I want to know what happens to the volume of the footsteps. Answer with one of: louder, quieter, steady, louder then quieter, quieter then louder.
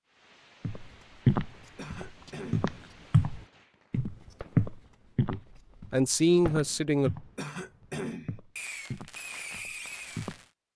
quieter.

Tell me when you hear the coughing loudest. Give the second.
8 s.